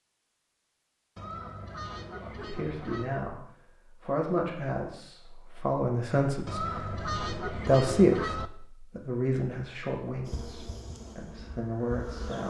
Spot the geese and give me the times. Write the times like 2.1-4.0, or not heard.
1.1-3.1, 6.5-8.5.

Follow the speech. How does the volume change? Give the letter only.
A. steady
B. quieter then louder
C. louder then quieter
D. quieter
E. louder
C.